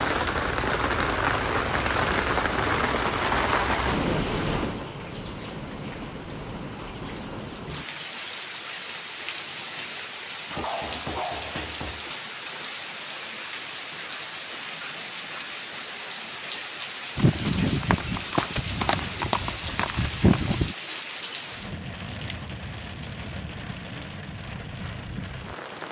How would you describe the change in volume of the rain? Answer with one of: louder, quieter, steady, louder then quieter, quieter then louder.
quieter.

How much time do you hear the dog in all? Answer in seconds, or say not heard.
2 s.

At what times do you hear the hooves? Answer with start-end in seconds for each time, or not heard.
17.1-20.8.